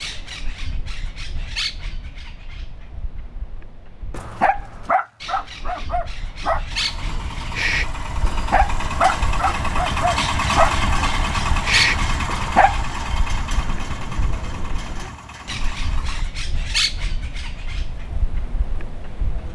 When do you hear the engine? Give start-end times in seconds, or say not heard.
6.7-16.2.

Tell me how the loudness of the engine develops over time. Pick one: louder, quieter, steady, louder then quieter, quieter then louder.
louder then quieter.